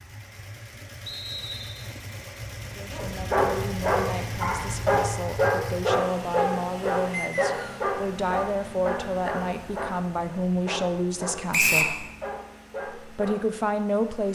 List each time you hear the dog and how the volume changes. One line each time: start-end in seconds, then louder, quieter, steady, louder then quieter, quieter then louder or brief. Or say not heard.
2.9-13.4 quieter.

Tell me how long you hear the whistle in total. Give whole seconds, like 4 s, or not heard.
2 s.